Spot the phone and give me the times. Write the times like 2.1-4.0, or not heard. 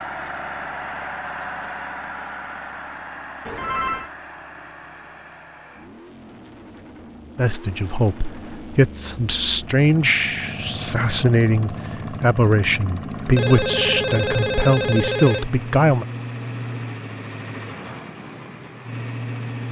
3.5-4.1, 13.3-15.6.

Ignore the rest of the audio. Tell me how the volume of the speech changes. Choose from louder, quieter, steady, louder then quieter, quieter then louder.
steady.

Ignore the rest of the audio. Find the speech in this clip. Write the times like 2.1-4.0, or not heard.
7.3-16.1.